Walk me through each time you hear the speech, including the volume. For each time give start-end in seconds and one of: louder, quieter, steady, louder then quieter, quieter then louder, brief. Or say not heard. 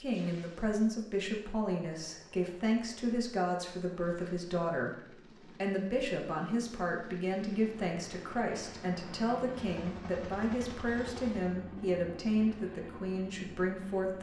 0.0-14.1 steady.